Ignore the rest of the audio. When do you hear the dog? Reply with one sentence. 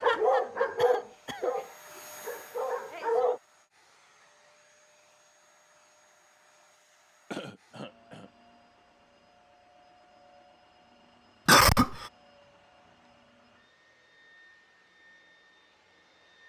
You can hear the dog from 0.0 to 3.4 s.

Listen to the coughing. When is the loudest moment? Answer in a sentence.
The volume of the coughing peaks at 12 seconds.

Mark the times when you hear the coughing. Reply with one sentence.
The coughing can be heard from 0.8 to 1.6 s, from 7.3 to 8.3 s and from 11.4 to 12.1 s.